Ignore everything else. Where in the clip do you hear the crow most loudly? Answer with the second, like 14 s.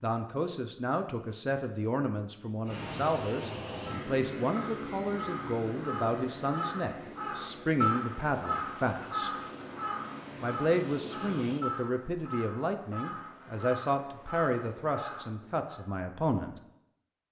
8 s.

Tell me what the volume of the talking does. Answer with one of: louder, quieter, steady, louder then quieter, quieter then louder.
steady.